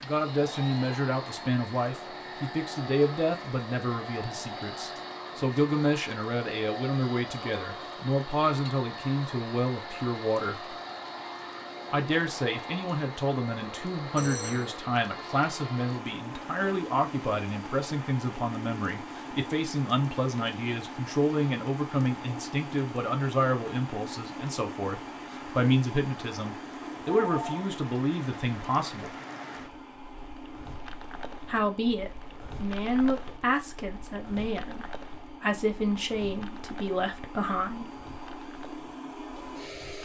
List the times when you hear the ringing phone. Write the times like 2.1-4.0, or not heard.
14.2-14.8, 27.1-27.6.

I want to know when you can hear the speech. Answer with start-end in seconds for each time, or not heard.
0.0-10.8, 11.9-29.1, 31.4-38.0.